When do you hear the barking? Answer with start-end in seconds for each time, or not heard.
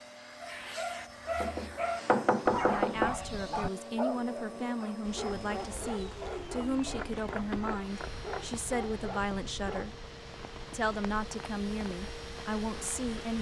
0.4-10.0.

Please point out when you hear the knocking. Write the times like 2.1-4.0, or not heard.
1.4-3.1, 7.0-8.5.